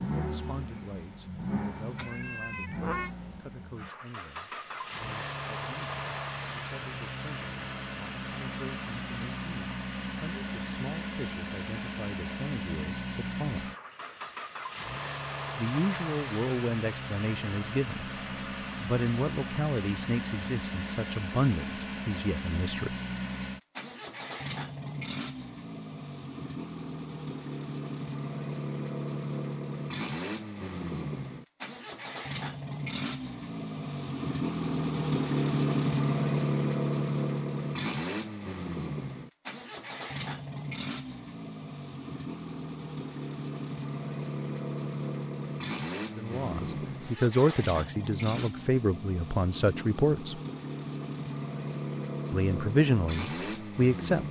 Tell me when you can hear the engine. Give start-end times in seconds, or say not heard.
0.0-54.2.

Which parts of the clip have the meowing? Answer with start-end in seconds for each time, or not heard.
1.9-3.1.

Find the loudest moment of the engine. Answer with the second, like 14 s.
36 s.